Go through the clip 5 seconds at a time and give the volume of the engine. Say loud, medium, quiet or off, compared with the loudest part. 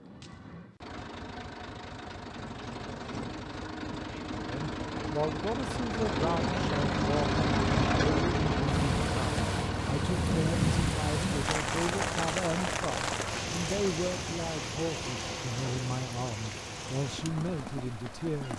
medium, loud, medium, quiet.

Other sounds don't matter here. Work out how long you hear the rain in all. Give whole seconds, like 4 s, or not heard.
10 s.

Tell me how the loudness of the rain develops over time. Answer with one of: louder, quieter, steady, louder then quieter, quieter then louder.
quieter.